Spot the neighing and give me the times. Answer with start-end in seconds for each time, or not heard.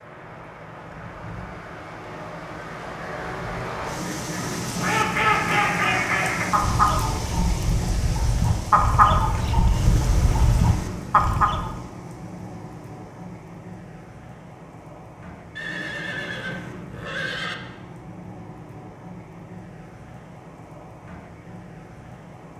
15.6-17.6.